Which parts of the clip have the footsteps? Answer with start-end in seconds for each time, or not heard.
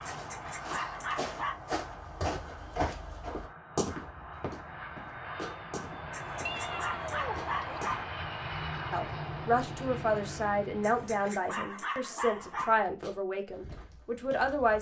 0.0-8.1, 12.2-14.7.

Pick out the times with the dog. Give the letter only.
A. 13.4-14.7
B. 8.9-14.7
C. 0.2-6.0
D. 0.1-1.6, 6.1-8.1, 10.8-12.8
D.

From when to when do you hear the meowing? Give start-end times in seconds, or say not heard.
6.5-7.8.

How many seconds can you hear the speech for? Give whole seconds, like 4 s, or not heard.
6 s.